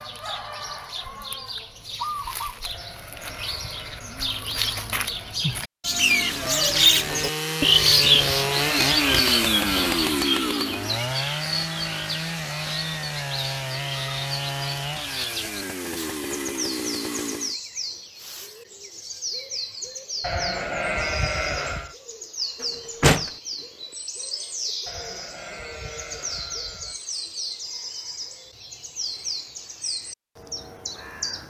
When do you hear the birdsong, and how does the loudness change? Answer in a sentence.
The birdsong can be heard from 0.0 to 31.4 s, getting louder then quieter.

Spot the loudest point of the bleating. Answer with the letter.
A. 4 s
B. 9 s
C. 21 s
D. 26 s
C.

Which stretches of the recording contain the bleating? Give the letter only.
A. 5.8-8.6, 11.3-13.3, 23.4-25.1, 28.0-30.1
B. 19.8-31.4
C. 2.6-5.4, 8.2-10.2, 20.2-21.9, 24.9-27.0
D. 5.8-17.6
C.